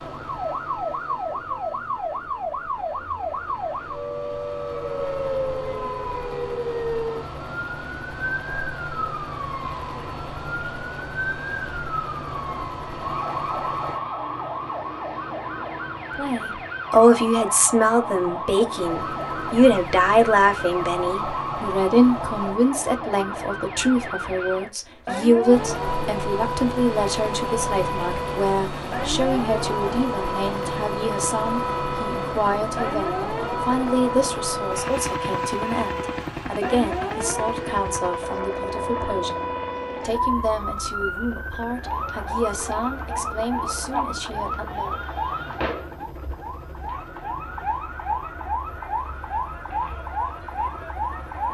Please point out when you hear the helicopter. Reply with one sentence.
You can hear the helicopter from 0.0 to 14.0 s, from 18.8 to 22.6 s and from 25.4 to 51.4 s.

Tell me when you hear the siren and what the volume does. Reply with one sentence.
The siren can be heard from 0.0 to 51.4 s, at a steady volume.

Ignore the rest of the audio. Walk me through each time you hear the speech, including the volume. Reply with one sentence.
The speech can be heard from 16.1 to 45.0 s, getting quieter.